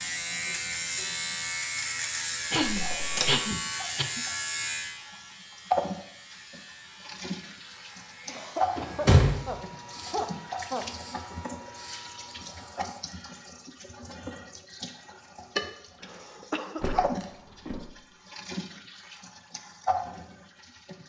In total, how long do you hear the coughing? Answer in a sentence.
The coughing can be heard for 6 seconds in total.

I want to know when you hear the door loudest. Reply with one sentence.
The volume of the door peaks at 9 seconds.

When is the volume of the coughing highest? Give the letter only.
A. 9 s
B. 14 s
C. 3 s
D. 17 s
C.